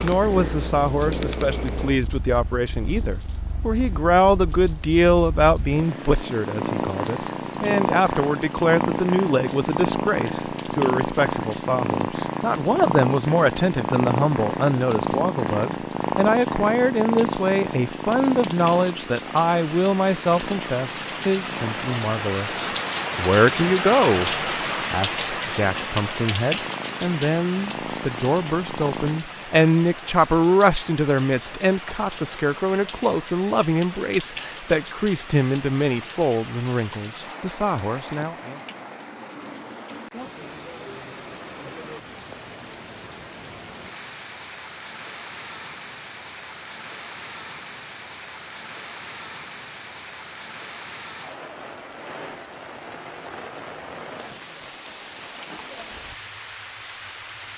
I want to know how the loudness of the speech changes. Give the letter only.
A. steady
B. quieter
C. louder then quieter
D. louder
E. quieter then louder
A.